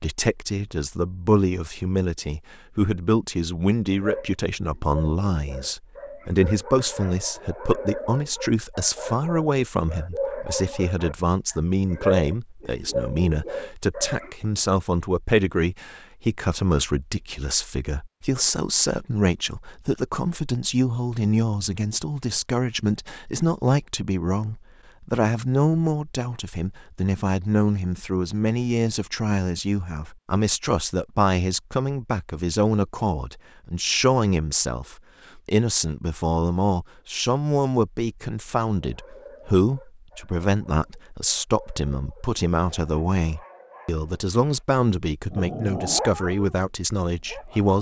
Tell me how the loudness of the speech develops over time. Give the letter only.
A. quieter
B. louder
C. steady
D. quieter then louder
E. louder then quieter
C.